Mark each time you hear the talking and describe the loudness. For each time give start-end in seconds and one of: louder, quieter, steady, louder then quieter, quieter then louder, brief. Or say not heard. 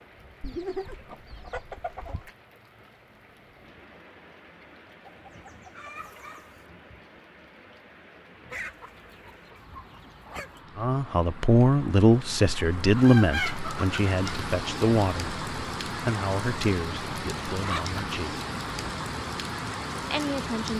10.8-18.4 quieter
20.1-20.7 brief.